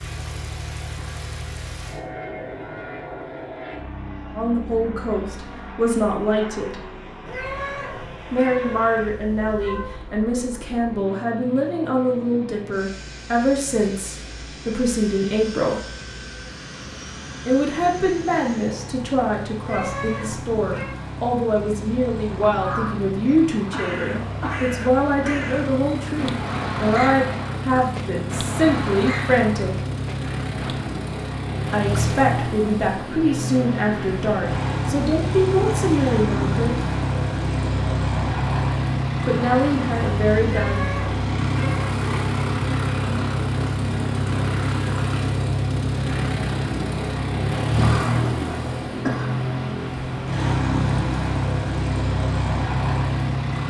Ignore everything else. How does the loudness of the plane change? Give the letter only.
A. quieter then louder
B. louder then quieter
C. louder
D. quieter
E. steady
C.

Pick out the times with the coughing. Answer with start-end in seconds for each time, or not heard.
23.7-24.7, 47.8-49.4.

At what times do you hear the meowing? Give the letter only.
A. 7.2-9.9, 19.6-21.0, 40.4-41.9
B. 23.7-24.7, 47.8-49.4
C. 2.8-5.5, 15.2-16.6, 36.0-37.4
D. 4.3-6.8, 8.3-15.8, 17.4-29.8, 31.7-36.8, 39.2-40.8
A.